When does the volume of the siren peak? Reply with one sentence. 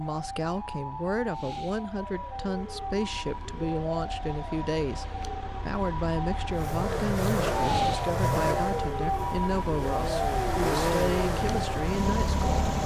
The loudest moment of the siren is at 8 seconds.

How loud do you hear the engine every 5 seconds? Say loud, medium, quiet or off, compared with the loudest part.
off, loud, loud.